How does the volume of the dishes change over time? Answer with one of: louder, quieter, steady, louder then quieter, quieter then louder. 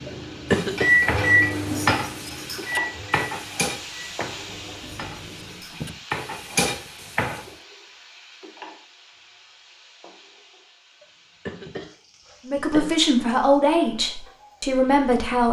quieter then louder.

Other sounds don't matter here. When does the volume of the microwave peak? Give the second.
1 s.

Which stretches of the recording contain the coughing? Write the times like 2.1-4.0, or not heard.
0.1-0.9, 11.0-13.0.